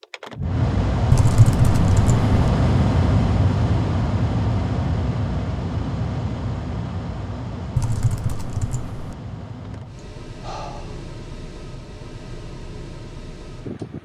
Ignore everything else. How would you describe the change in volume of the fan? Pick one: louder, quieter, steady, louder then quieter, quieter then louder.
quieter.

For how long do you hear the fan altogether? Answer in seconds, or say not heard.
14 s.